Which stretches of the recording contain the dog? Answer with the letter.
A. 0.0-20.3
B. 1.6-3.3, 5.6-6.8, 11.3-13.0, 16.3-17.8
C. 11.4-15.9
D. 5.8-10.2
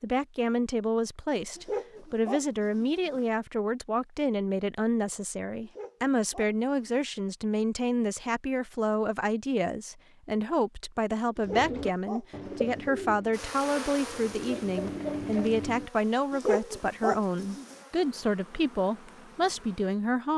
B.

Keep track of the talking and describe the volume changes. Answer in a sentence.
The volume of the talking stays about the same.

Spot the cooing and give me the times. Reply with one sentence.
You can hear the cooing from 11.4 to 15.9 s.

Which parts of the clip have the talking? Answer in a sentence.
The talking can be heard from 0.0 to 20.3 s.